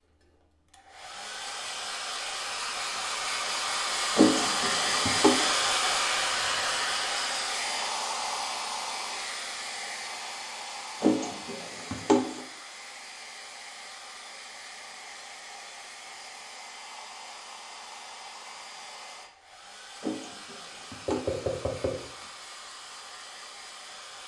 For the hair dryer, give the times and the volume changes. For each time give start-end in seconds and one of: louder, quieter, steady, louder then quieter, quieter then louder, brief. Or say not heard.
0.0-24.2 quieter.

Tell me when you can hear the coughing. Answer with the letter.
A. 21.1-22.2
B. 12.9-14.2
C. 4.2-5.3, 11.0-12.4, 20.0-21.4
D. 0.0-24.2
C.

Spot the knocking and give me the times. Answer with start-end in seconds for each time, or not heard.
21.1-22.2.